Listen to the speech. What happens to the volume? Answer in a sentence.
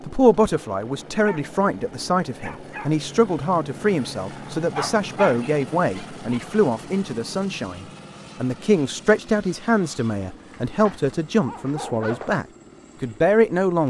The volume of the speech stays about the same.